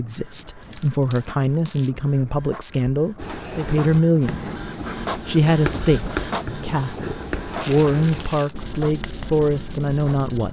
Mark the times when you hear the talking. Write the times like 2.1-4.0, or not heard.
0.0-4.5, 5.2-10.4.